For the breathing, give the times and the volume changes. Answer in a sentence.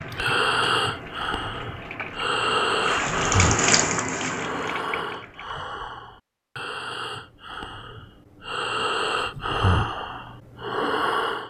The breathing can be heard from 0.1 to 11.4 s, getting quieter then louder.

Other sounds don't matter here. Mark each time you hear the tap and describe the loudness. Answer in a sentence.
You can hear the tap from 0.0 to 5.5 s, getting louder then quieter.